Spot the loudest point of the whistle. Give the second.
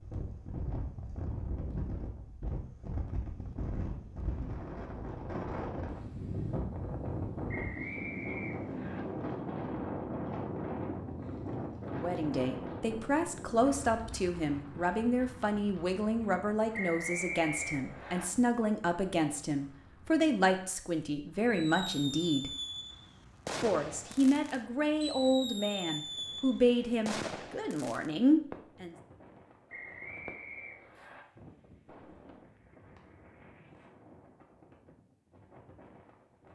17 s.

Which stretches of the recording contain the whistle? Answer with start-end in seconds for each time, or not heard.
7.5-9.0, 16.7-18.2, 29.6-31.2.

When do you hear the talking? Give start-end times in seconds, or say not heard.
11.9-22.5, 23.6-28.9.